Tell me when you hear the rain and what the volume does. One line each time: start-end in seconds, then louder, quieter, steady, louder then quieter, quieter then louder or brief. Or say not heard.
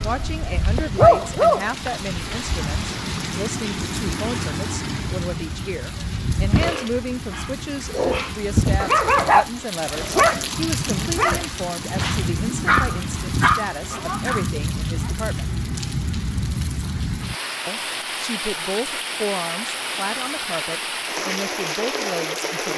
0.0-22.7 steady.